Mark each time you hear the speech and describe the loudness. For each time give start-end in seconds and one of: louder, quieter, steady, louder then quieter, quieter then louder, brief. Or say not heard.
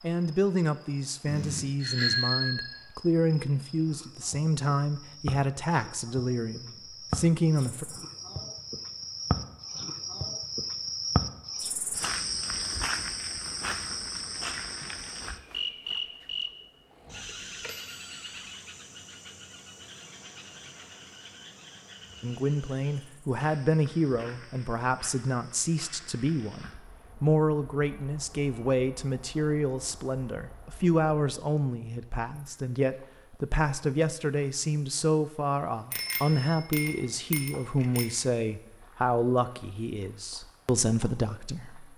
0.0-7.8 steady
22.2-41.9 steady.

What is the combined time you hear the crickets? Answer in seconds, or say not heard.
42 s.